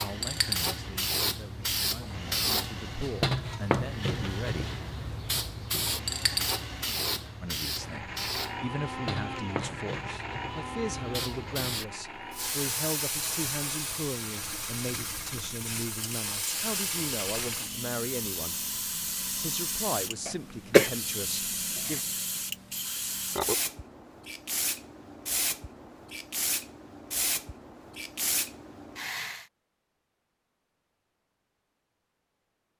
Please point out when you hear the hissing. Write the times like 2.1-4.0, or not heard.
0.0-29.4.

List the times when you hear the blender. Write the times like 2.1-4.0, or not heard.
0.0-12.6.